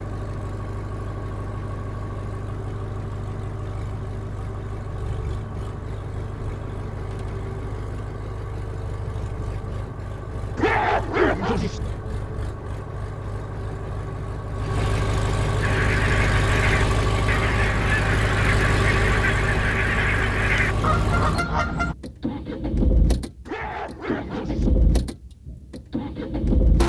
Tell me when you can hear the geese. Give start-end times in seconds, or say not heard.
15.6-21.9.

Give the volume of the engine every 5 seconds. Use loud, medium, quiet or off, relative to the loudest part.
medium, medium, medium, loud, loud, loud.